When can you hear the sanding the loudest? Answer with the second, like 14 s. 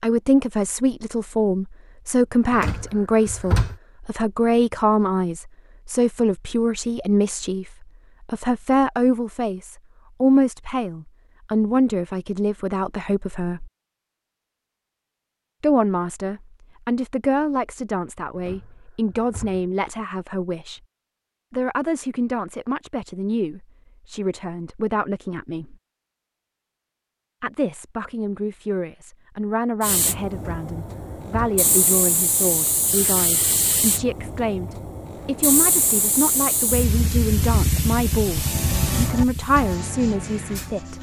39 s.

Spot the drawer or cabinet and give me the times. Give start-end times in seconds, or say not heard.
2.5-3.8, 18.4-19.6, 30.4-31.6.